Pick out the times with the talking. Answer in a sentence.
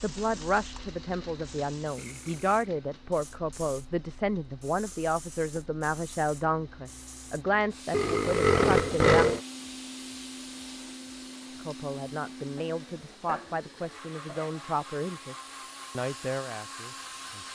You can hear the talking from 0.0 to 9.2 s and from 11.6 to 17.5 s.